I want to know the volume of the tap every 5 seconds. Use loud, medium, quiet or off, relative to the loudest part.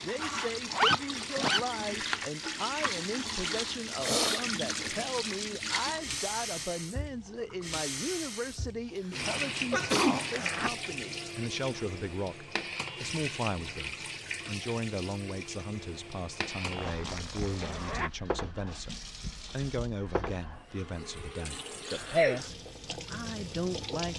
loud, loud, loud, medium, medium.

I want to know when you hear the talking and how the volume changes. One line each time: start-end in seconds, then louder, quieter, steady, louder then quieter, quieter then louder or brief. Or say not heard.
0.0-24.1 steady.